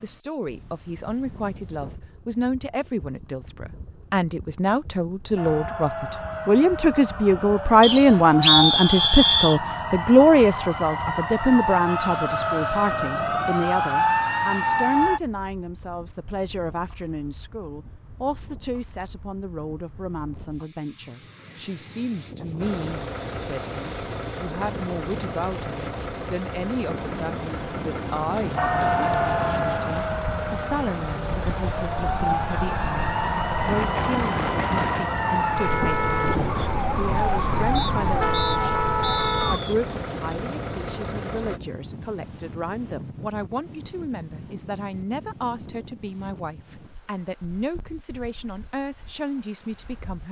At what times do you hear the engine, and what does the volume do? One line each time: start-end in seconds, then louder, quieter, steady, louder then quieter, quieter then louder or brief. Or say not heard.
22.6-41.6 steady.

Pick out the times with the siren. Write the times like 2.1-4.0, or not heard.
5.3-15.2, 28.6-39.6.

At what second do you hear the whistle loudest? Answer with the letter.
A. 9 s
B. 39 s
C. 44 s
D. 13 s
A.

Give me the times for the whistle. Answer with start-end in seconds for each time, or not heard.
7.8-9.6, 37.8-39.8.